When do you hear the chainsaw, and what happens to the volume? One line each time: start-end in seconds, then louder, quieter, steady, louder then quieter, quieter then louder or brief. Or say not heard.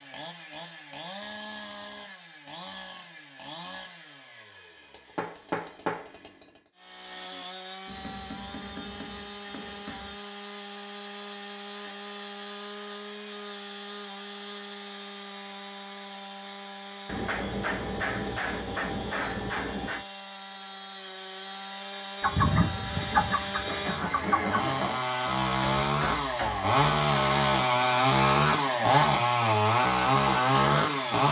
0.0-31.2 louder.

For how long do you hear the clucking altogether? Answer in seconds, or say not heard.
3 s.